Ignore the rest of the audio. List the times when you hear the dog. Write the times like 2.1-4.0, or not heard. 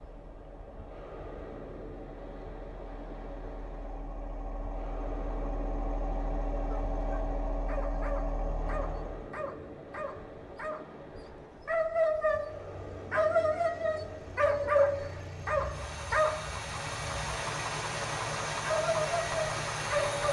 6.6-16.5, 18.6-20.2.